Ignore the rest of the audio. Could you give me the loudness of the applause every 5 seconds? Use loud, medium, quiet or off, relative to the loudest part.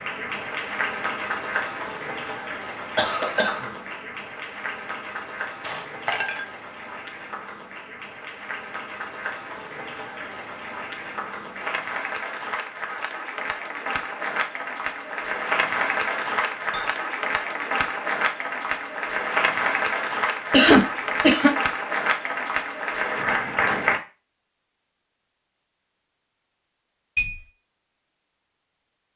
medium, medium, medium, loud, loud, off.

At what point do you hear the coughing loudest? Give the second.
21 s.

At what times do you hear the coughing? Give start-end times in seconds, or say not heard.
2.5-3.7, 20.5-21.5.